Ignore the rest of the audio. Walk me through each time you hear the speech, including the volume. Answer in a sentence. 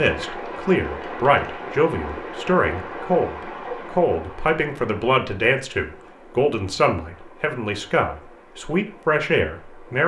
You can hear the speech from 0.0 to 10.0 s, at a steady volume.